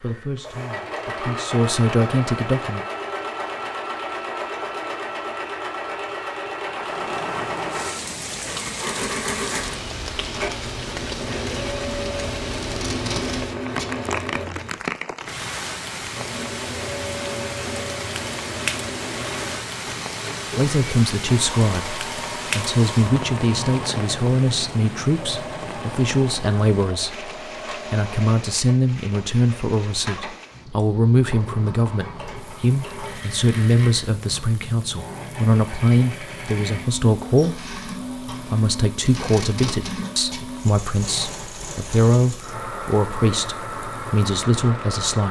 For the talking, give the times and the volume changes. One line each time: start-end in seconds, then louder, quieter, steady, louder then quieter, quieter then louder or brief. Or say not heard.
0.0-2.9 brief
20.6-45.2 steady.